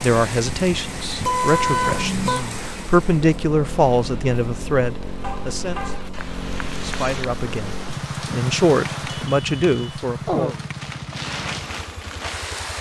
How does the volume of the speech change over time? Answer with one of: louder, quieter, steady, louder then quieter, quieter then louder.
steady.